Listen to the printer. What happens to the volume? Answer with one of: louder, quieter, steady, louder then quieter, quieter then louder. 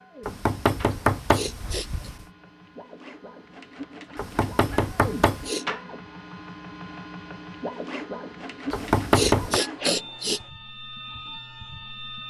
louder.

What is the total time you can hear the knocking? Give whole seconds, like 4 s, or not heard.
4 s.